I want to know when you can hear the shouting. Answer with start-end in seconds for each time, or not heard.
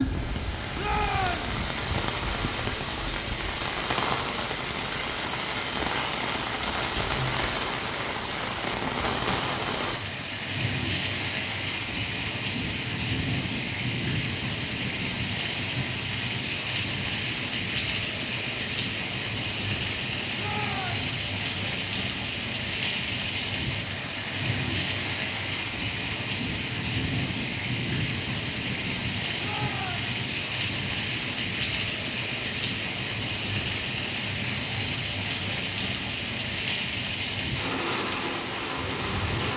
0.8-1.6, 20.4-21.1, 29.4-30.1.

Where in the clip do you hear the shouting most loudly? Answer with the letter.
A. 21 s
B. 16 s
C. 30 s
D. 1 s
D.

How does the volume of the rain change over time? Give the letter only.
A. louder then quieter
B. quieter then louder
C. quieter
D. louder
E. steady
E.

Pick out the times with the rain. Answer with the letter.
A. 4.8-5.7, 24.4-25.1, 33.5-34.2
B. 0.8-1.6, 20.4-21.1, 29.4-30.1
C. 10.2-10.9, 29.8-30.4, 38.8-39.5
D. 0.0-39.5
D.